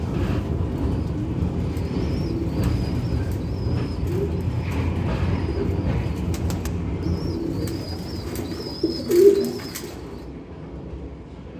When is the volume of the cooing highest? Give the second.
9 s.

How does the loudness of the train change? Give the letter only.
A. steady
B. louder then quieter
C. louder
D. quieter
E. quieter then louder
D.